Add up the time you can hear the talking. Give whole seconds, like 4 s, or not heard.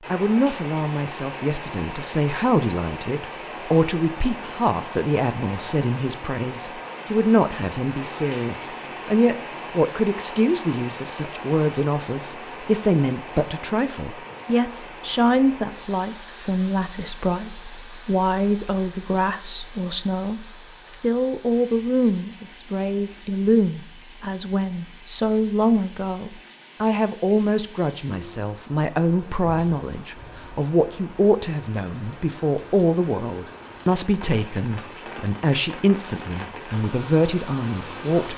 38 s.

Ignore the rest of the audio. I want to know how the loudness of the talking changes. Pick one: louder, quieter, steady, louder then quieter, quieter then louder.
steady.